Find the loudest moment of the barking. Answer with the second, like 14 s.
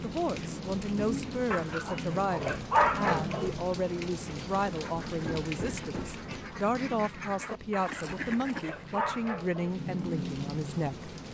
3 s.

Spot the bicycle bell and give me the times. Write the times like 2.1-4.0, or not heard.
not heard.